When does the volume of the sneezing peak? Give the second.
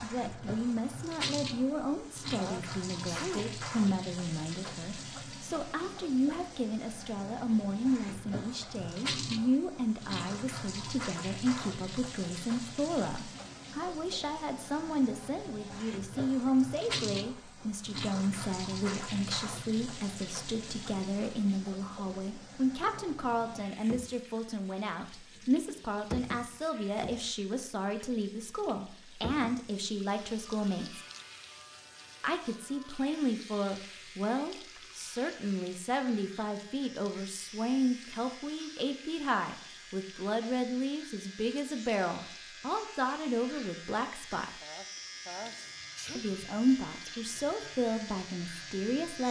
3 s.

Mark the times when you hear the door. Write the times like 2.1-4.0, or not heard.
not heard.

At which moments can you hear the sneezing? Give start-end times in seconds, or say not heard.
1.7-3.5, 44.6-46.2.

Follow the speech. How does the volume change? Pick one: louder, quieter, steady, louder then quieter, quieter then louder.
steady.